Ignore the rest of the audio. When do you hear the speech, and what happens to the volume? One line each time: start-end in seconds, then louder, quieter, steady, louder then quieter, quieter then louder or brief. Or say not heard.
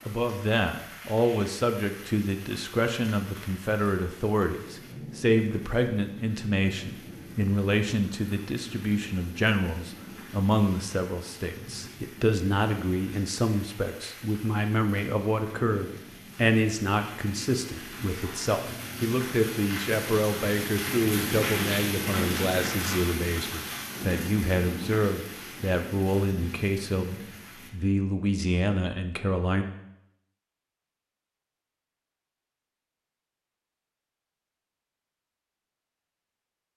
0.1-29.6 steady.